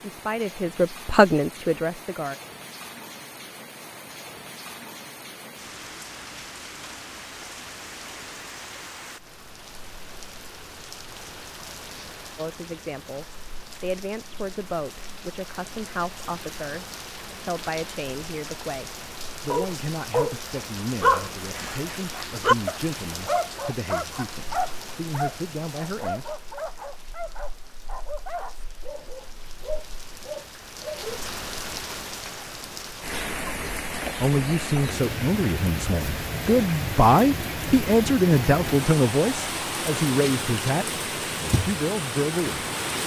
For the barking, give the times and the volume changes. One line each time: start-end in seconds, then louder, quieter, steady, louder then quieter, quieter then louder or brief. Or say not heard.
19.5-31.2 quieter.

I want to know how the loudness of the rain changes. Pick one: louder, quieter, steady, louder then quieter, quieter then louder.
louder.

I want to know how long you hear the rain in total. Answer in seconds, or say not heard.
43 s.